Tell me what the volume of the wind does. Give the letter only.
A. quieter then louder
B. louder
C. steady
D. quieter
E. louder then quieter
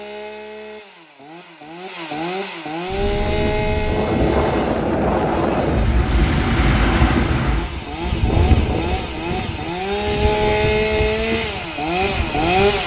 D.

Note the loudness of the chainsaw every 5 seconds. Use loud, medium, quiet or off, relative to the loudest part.
medium, medium, loud.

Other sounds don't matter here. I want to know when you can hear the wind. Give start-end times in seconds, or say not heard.
2.9-12.8.